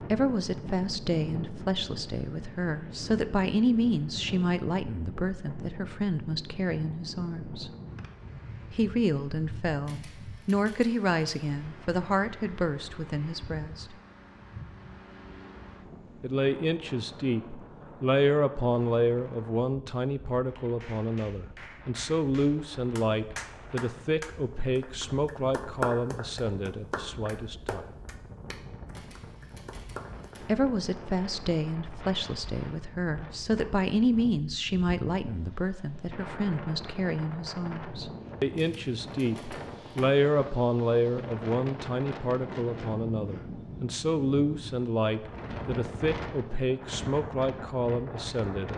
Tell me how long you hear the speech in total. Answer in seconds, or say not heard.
43 s.